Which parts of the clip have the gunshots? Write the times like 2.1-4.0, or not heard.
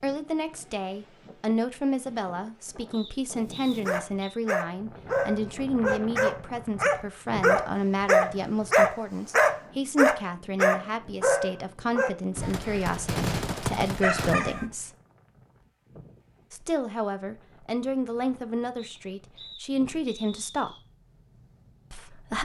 12.3-14.3.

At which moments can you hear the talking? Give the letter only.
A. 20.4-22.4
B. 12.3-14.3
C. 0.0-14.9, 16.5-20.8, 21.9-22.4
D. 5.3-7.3
C.